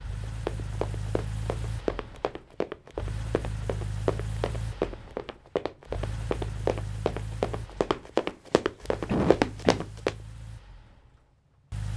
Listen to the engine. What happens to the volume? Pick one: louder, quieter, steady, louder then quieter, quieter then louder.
quieter.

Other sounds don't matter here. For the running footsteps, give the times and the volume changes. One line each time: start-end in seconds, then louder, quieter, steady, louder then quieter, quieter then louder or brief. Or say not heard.
0.2-10.1 louder.